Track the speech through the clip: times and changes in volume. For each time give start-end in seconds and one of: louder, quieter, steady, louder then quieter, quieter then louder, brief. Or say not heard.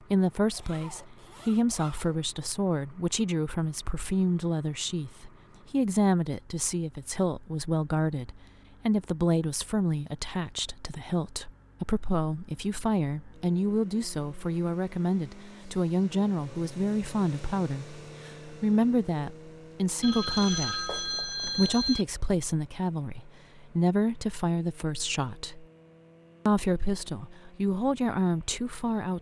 0.1-25.6 steady
26.4-29.1 brief.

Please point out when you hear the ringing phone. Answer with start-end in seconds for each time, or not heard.
20.0-22.1.